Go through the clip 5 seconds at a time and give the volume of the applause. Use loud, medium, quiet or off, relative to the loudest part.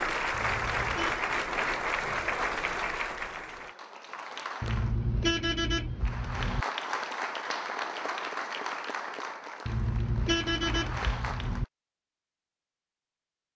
loud, loud, medium.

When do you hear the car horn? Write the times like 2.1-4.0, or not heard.
0.3-1.2, 4.6-6.7, 9.7-11.7.